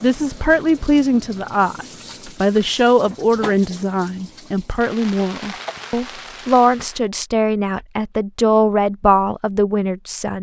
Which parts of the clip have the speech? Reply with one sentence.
The speech can be heard from 0.0 to 10.3 s.